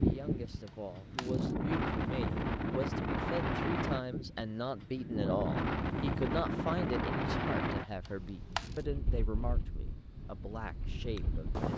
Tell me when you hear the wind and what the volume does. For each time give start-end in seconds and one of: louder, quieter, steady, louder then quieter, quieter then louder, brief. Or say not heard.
0.0-11.7 quieter.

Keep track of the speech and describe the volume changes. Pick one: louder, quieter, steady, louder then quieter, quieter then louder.
louder then quieter.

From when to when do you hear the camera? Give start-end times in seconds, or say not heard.
0.7-1.6, 8.1-8.8.